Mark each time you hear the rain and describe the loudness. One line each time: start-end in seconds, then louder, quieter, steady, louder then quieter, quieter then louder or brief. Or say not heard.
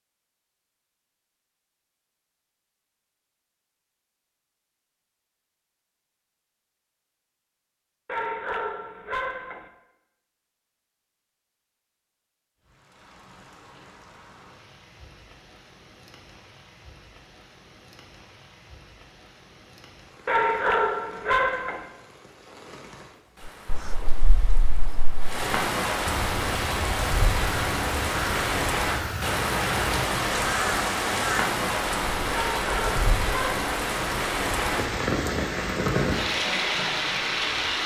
12.6-37.8 louder.